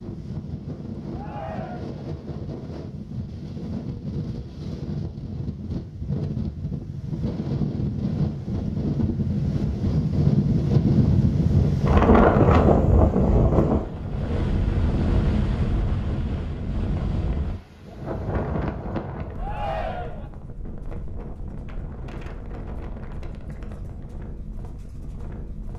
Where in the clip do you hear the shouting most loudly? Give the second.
20 s.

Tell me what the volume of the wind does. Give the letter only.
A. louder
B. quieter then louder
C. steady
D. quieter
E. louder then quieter
E.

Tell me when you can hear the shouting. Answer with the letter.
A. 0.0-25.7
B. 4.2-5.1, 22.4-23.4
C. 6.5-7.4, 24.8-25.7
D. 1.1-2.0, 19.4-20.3
D.